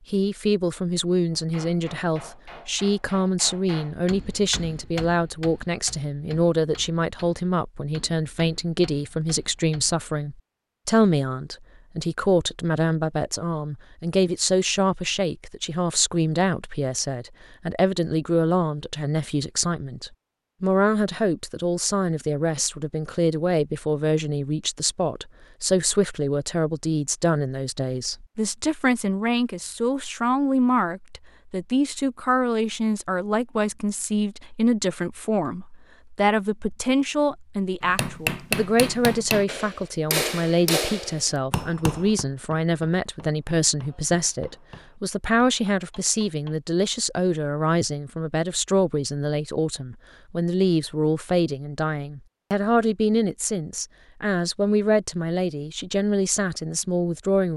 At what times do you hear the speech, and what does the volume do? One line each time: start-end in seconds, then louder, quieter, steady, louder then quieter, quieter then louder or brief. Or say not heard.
0.1-57.5 steady.